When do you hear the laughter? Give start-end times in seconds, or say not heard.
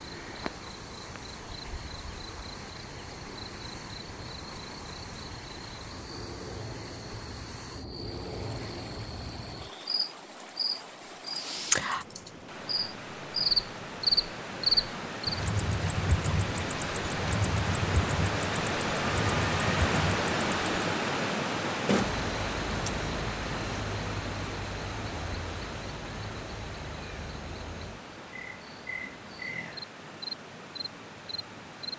not heard.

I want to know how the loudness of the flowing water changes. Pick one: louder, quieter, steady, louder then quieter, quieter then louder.
louder then quieter.